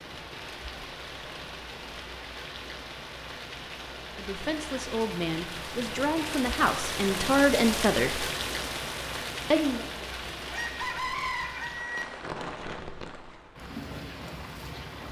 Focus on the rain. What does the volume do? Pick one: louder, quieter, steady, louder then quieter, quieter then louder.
louder then quieter.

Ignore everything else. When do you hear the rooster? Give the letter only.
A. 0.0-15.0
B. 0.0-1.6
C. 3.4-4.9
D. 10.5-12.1
D.